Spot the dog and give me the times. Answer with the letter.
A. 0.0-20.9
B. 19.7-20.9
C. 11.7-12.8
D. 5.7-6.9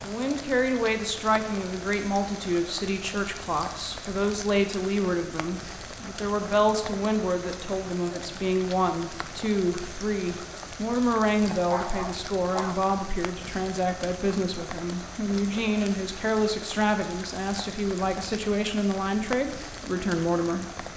C.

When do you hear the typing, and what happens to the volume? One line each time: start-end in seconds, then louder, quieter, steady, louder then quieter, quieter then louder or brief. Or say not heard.
not heard.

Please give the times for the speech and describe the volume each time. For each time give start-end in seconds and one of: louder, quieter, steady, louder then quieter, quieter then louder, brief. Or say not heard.
0.0-20.9 steady.